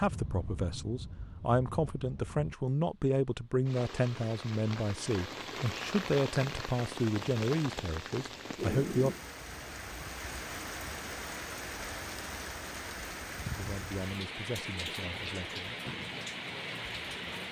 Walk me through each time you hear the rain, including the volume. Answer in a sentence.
You can hear the rain from 0.0 to 17.4 s, getting louder.